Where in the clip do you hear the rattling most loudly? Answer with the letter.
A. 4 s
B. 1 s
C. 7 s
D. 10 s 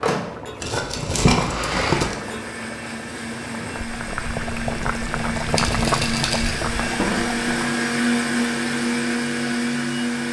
B.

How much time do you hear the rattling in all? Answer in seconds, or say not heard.
3 s.